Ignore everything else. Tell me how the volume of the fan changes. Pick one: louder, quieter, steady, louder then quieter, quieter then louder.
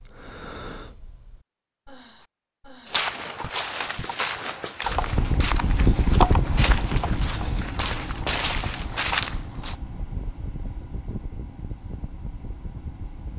quieter.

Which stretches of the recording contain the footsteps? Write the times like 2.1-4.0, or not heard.
2.9-9.8.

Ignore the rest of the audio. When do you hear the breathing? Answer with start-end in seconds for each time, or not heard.
0.0-4.4.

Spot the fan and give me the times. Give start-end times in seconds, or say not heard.
4.8-13.3.